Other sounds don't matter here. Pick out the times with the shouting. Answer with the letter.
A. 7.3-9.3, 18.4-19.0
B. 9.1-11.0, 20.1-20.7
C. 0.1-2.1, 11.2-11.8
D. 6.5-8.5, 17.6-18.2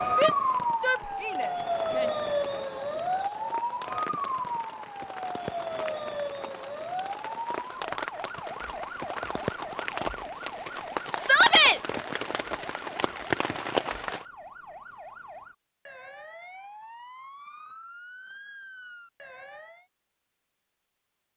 C.